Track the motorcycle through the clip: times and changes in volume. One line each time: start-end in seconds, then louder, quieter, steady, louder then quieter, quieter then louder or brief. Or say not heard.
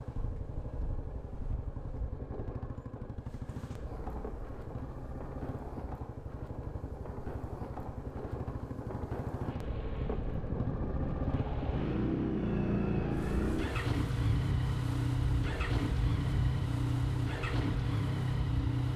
0.0-18.9 louder.